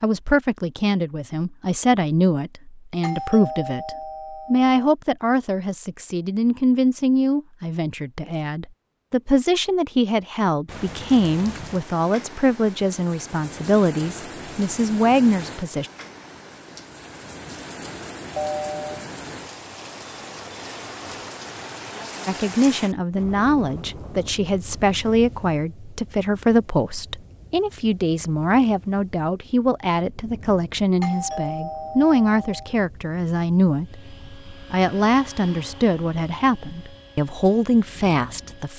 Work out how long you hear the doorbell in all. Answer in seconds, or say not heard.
4 s.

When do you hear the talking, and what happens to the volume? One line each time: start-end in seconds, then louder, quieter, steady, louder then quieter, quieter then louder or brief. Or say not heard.
0.0-15.9 steady
22.2-38.7 steady.